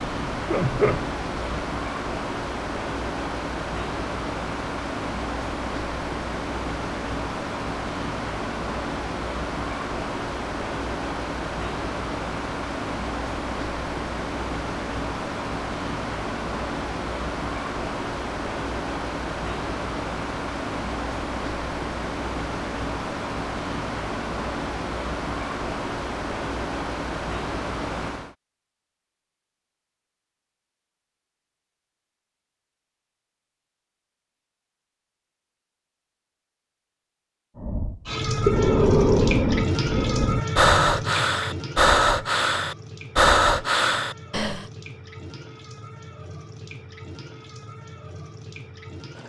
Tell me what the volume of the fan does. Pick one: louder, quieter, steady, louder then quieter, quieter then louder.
steady.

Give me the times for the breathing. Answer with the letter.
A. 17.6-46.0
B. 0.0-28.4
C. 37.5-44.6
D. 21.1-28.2
C.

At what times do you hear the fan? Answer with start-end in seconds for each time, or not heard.
0.0-28.4.